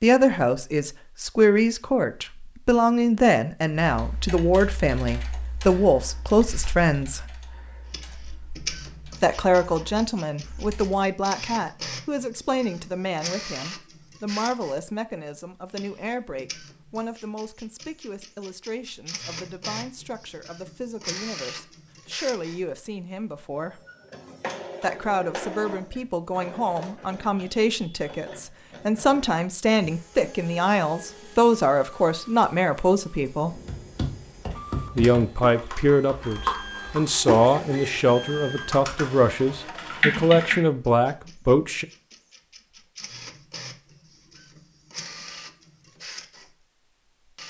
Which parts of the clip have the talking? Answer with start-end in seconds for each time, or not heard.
0.0-7.3, 9.2-23.8, 24.8-33.6, 35.0-41.9.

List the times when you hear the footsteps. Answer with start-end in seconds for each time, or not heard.
not heard.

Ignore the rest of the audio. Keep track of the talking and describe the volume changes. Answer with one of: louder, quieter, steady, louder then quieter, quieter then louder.
quieter then louder.